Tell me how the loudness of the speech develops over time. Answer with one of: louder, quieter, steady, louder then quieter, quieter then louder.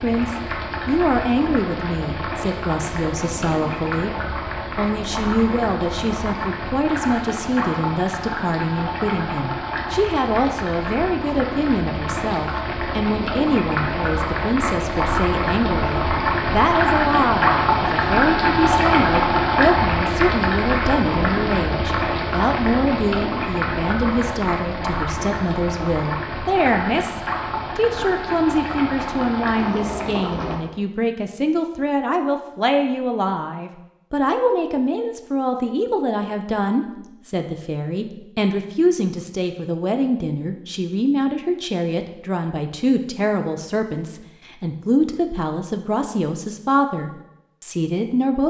steady.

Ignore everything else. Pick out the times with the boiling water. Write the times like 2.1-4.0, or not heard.
0.0-30.6.